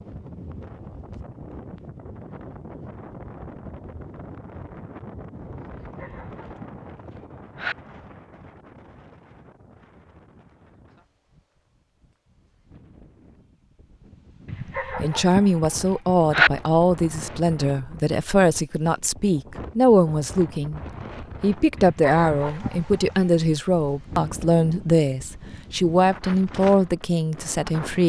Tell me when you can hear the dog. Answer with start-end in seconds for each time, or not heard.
5.7-7.8, 14.4-16.5, 21.8-23.4.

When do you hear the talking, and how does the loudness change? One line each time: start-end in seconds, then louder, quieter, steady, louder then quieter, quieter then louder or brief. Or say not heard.
14.9-28.0 steady.